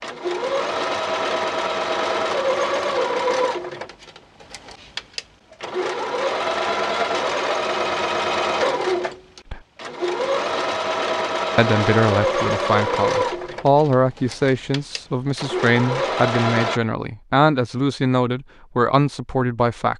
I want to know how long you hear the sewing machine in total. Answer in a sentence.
The sewing machine can be heard for 17 seconds in total.